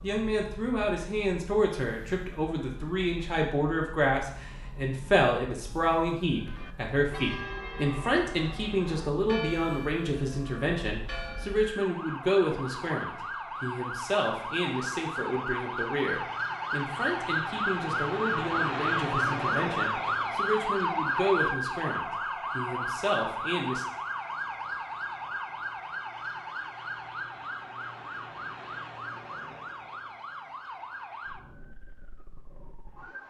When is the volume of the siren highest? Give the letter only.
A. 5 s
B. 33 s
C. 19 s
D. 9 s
C.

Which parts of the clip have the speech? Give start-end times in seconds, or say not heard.
0.0-23.9.